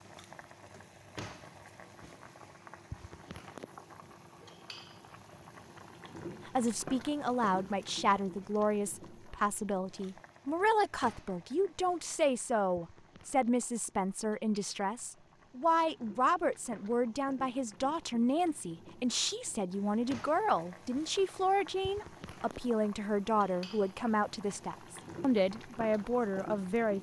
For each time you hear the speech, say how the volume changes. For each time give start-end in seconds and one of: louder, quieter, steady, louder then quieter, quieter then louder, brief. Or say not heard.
6.5-26.9 steady.